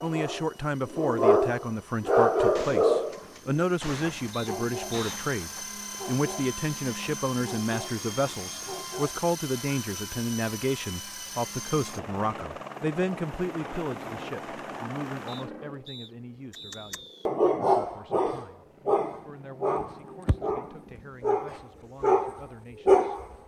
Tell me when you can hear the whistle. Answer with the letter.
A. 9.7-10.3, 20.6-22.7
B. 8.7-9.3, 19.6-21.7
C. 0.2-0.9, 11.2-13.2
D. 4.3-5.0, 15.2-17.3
D.